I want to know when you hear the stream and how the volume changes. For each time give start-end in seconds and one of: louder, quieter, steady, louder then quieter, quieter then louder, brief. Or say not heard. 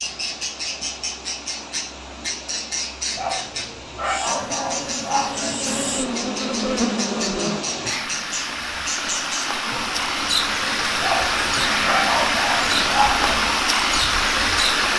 0.0-14.9 louder.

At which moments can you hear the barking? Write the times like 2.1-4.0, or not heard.
3.1-5.6, 11.0-13.3.